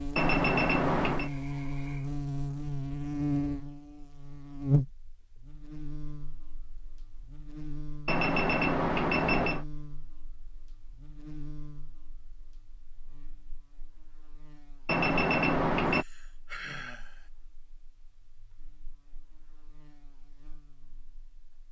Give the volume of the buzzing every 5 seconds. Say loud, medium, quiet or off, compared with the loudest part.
loud, quiet, quiet, quiet, quiet.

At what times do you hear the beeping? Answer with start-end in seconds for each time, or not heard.
0.1-1.3, 8.1-9.7, 14.8-16.1.